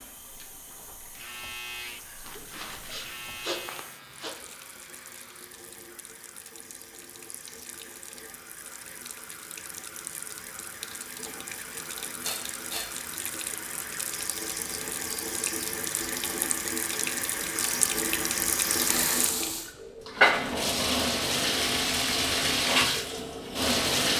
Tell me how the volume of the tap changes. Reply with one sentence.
The volume of the tap goes up.